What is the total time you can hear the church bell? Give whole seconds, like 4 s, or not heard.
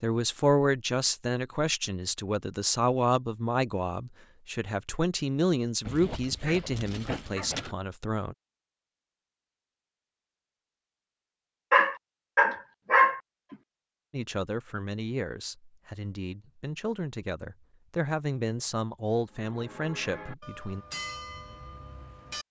3 s.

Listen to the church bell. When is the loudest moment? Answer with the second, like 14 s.
21 s.